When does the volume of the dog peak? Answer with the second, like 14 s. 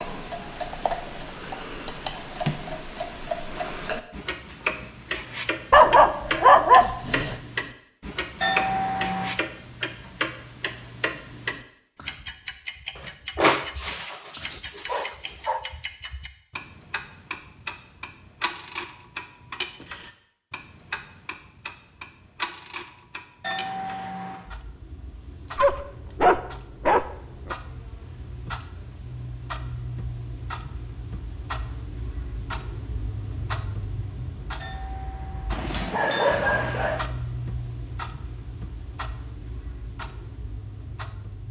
7 s.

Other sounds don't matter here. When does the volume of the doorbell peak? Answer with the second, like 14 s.
9 s.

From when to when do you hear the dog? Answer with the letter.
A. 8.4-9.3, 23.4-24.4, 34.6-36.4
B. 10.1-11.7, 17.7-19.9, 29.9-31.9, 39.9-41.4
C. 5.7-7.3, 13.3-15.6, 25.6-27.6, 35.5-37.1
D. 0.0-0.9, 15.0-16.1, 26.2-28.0
C.